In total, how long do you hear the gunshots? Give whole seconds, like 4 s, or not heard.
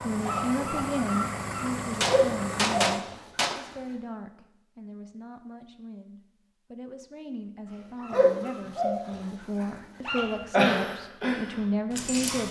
2 s.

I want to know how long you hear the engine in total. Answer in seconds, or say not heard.
3 s.